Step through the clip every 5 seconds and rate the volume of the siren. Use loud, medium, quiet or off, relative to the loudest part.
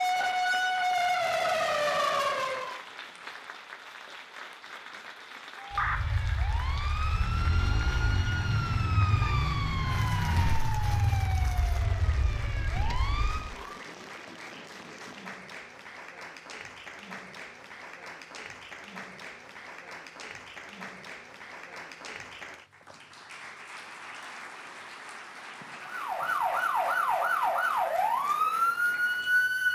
loud, medium, medium, off, off, loud.